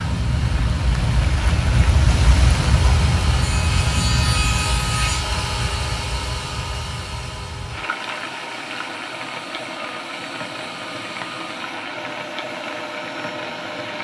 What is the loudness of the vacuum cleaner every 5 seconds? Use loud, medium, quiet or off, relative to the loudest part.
loud, loud, medium.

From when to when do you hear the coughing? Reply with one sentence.
The coughing can't be heard in this clip.